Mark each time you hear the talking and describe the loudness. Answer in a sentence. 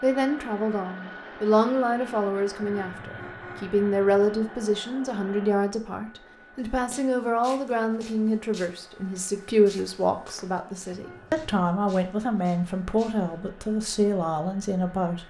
You can hear the talking from 0.0 to 15.2 s, at a steady volume.